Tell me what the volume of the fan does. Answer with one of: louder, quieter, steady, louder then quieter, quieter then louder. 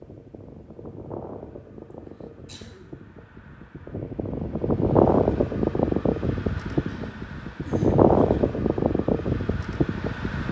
louder.